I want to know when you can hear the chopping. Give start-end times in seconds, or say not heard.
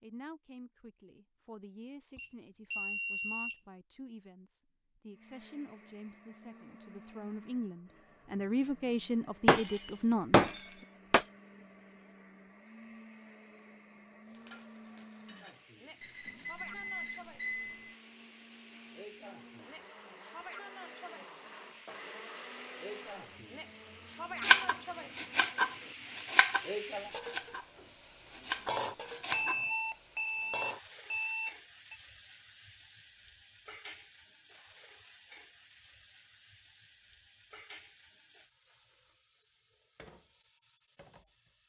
24.4-29.6.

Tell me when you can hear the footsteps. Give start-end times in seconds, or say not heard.
not heard.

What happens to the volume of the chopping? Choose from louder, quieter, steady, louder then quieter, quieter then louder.
quieter then louder.